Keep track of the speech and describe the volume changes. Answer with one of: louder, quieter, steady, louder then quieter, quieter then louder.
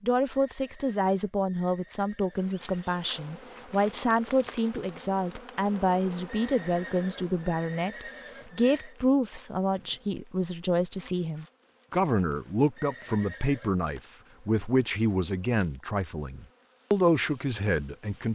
steady.